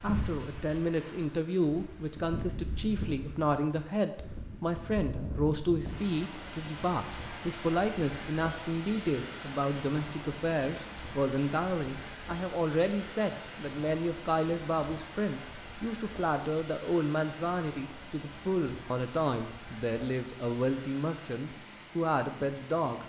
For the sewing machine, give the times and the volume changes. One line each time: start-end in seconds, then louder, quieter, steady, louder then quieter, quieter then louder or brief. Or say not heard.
not heard.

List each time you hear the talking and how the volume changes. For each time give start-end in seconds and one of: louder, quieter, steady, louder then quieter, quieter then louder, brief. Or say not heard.
0.0-23.0 steady.